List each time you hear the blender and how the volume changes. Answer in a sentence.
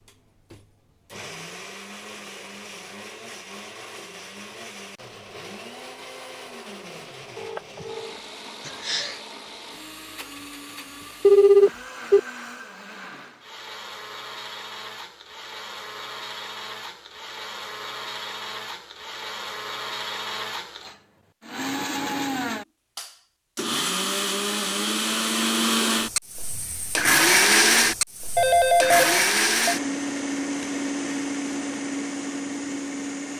You can hear the blender from 0.0 to 33.3 s, getting louder.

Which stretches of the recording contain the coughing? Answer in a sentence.
You can hear the coughing from 8.6 to 9.2 s.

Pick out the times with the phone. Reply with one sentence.
You can hear the phone from 7.3 to 8.2 s, from 11.2 to 12.2 s and from 28.4 to 29.8 s.